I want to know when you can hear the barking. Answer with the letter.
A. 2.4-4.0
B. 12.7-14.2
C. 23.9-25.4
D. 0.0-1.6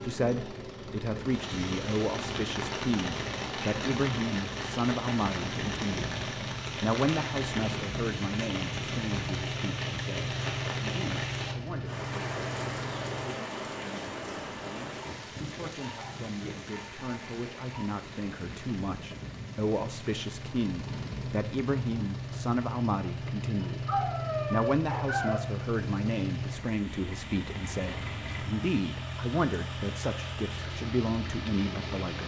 C.